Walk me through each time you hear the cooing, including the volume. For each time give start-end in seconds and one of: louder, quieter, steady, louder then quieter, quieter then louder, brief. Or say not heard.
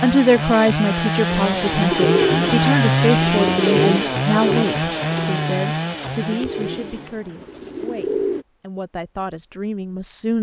1.2-8.4 quieter.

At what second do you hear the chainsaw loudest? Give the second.
3 s.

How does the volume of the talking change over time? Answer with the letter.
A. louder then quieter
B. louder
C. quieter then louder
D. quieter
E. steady
D.